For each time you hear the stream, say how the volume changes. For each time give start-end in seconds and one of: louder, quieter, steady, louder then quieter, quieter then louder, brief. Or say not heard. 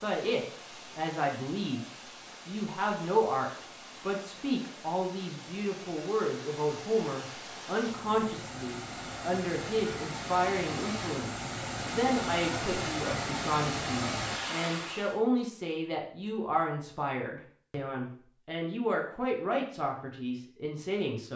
0.0-15.2 louder.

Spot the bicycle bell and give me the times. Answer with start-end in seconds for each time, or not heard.
not heard.